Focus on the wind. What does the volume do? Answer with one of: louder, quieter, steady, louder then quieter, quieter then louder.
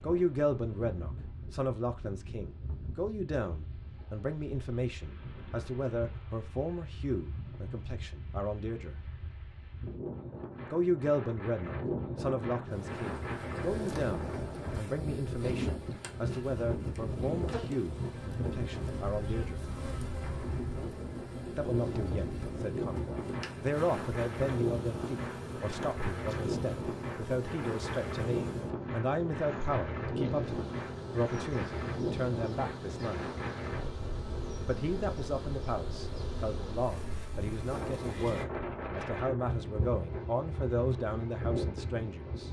louder.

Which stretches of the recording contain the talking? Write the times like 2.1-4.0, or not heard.
0.0-9.0, 10.7-19.6, 21.6-33.3, 34.6-42.4.